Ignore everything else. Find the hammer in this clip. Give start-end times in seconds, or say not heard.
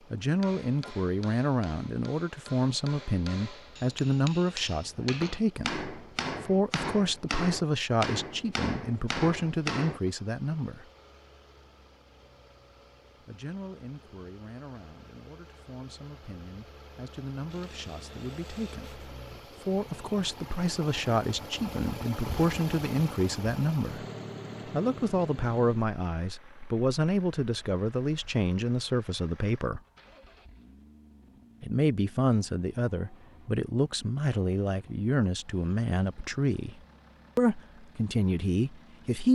0.4-10.1.